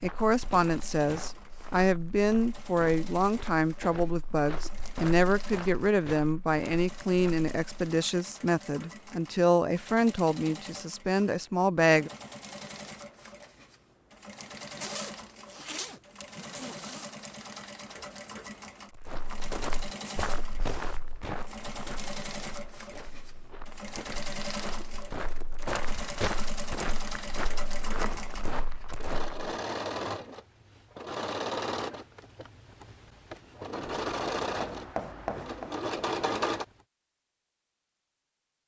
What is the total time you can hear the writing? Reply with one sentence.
You can hear the writing for 2 seconds altogether.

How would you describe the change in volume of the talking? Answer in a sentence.
The loudness of the talking stays about the same.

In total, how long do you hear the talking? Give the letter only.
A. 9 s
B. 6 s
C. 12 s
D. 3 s
C.